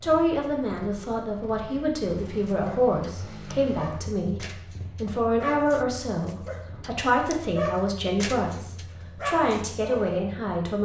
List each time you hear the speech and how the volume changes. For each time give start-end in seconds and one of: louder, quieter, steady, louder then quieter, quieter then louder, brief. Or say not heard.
0.0-10.8 steady.